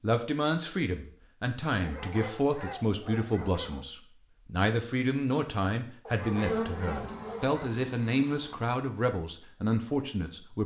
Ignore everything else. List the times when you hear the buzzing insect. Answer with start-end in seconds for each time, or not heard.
6.2-8.6.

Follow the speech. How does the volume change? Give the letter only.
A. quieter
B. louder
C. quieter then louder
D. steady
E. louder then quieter
D.